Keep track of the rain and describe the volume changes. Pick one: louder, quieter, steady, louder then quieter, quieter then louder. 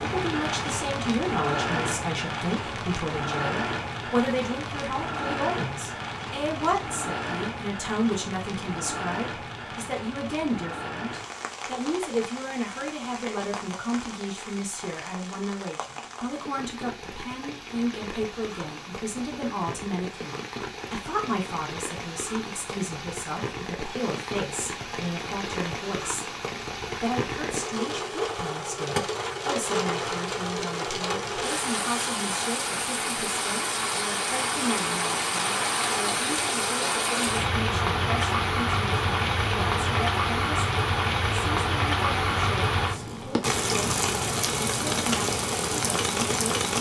quieter then louder.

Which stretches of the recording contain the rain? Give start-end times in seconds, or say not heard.
0.0-46.7.